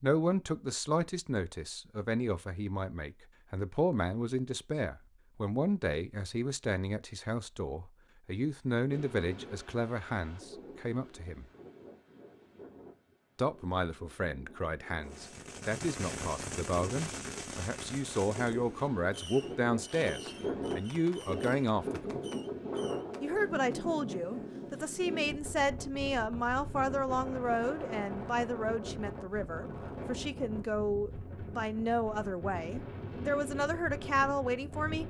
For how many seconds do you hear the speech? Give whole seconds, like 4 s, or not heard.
32 s.